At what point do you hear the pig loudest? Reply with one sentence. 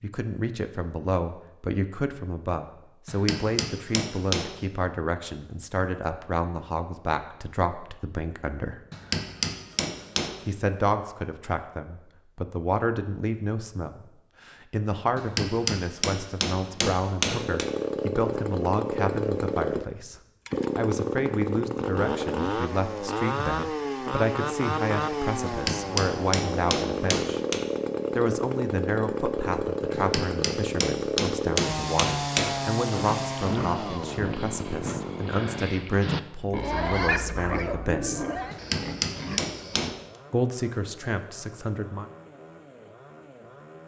The loudest moment of the pig is at 37 seconds.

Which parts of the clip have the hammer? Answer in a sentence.
The hammer can be heard from 3.0 to 4.5 s, from 8.9 to 10.4 s, from 15.2 to 17.7 s, from 25.4 to 27.6 s, from 29.9 to 32.6 s and from 38.5 to 40.0 s.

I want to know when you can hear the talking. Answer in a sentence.
The talking can be heard from 0.0 to 8.8 s, from 10.4 to 20.1 s, from 20.8 to 27.4 s, from 28.1 to 38.2 s and from 40.3 to 42.1 s.